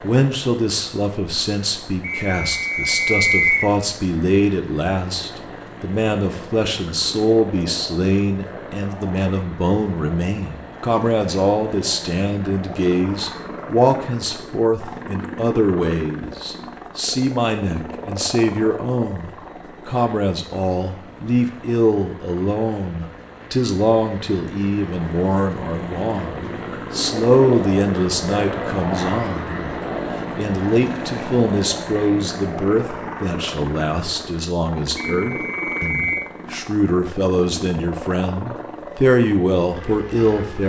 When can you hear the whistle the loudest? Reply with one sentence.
The volume of the whistle peaks at 3 seconds.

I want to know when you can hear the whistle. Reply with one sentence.
The whistle can be heard from 2.0 to 3.7 s and from 35.0 to 36.2 s.